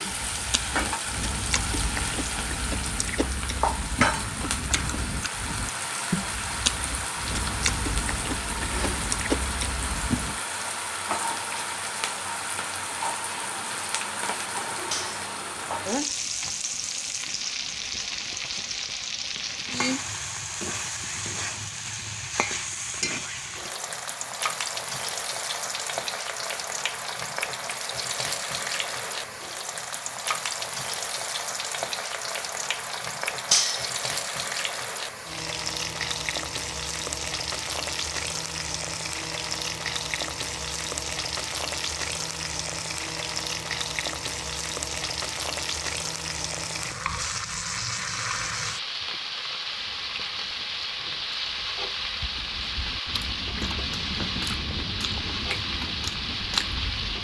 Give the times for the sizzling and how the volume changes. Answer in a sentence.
You can hear the sizzling from 0.0 to 57.1 s, at a steady volume.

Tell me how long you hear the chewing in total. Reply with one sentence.
The chewing can be heard for 18 seconds in total.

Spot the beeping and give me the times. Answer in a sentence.
The beeping can't be heard in this clip.